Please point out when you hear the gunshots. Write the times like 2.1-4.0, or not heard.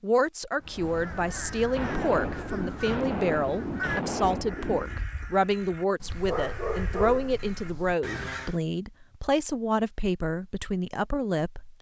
1.8-5.0.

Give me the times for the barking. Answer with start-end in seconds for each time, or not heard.
6.0-8.0.